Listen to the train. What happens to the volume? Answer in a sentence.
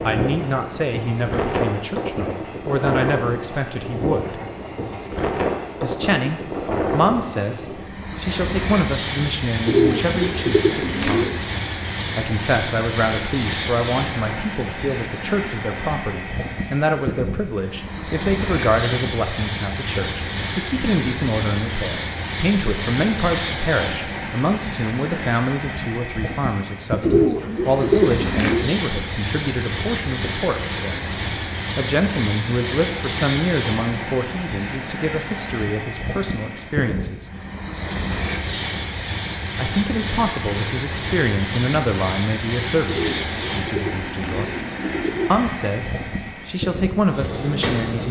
The loudness of the train stays about the same.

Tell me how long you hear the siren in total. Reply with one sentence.
You can't hear the siren here.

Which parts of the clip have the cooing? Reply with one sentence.
You can hear the cooing from 9.7 to 11.4 s, from 27.0 to 28.8 s and from 42.9 to 45.3 s.